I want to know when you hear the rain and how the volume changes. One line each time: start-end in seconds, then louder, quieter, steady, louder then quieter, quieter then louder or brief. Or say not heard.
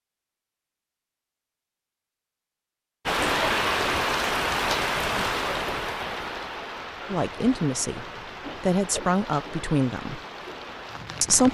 3.0-11.4 quieter.